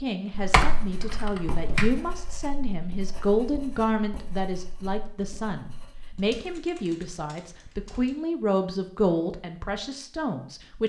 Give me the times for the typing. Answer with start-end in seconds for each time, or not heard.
0.3-1.9, 6.2-8.1.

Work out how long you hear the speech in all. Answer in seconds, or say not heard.
11 s.